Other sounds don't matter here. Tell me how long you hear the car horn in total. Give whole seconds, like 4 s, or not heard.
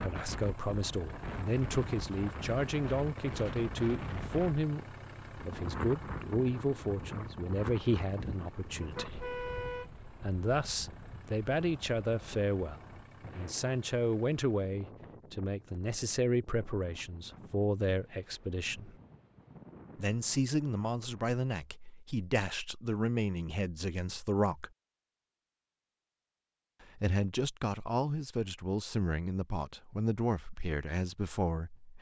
2 s.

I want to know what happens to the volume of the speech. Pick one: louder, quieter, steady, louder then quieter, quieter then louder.
steady.